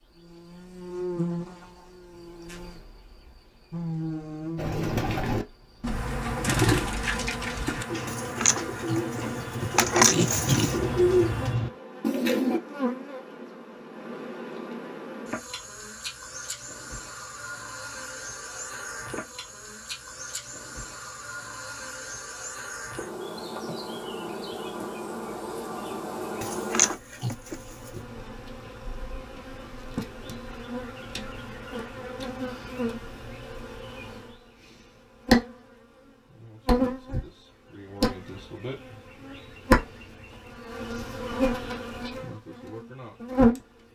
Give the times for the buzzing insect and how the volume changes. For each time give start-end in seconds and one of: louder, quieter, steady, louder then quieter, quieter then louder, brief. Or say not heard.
0.0-43.6 louder.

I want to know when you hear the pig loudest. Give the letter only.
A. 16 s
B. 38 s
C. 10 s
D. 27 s
C.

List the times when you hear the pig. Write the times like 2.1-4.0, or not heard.
8.1-10.8, 26.4-28.0.